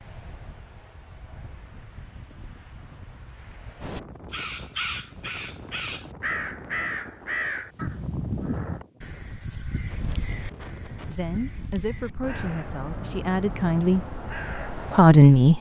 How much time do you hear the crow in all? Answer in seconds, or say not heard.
11 s.